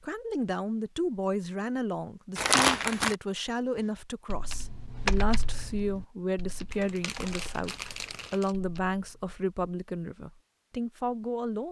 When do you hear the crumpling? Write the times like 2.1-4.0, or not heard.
2.4-3.1, 6.7-8.6.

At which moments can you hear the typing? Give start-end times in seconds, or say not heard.
3.8-9.3.